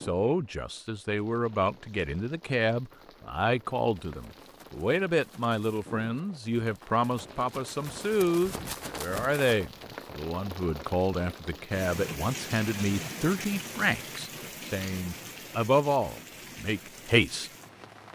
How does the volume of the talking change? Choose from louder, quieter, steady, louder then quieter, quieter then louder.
steady.